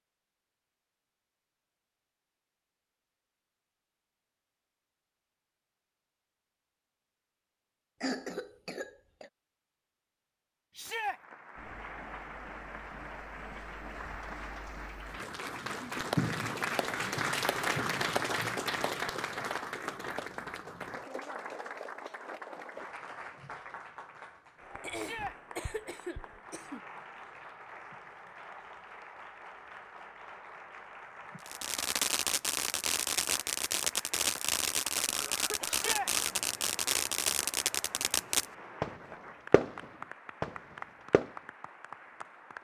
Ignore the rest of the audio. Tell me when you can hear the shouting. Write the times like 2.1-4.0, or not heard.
10.8-11.2, 24.9-25.4, 35.6-36.1.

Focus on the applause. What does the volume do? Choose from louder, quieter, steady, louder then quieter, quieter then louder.
quieter.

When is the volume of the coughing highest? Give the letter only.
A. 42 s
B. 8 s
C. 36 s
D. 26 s
B.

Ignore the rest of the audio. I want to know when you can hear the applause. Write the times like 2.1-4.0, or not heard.
10.9-42.6.